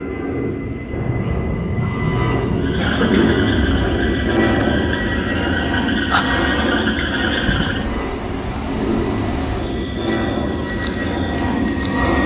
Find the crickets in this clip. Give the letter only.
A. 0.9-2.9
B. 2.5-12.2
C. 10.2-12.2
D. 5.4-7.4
B.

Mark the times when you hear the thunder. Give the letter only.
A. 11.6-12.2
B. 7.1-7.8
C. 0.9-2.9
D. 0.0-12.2
C.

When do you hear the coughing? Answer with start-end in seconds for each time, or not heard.
2.8-3.4.